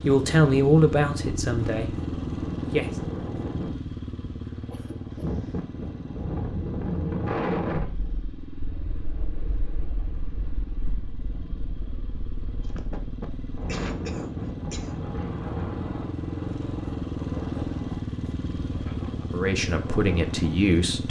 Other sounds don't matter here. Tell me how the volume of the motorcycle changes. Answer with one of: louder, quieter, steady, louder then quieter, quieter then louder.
quieter then louder.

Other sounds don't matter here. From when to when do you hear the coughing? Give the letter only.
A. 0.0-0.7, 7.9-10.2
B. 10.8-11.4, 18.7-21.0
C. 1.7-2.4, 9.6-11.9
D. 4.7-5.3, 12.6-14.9
D.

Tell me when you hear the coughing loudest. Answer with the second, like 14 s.
14 s.